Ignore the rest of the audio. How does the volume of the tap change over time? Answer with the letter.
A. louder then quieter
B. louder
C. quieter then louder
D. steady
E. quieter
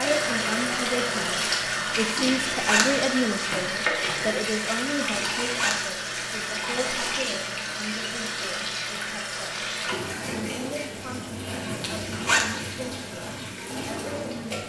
E.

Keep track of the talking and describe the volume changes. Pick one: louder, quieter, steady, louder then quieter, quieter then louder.
quieter.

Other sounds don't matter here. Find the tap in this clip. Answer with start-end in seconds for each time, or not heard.
0.0-14.6.